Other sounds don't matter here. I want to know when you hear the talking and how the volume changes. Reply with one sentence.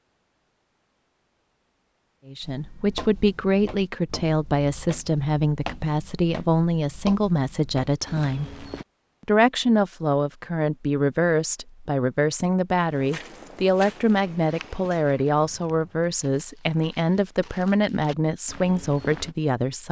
You can hear the talking from 2.2 to 8.5 s, at a steady volume; and from 9.2 to 19.8 s, at a steady volume.